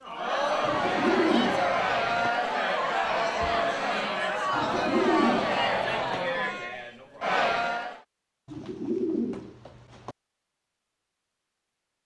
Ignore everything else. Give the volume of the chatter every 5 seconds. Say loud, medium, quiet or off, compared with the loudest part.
loud, loud, off.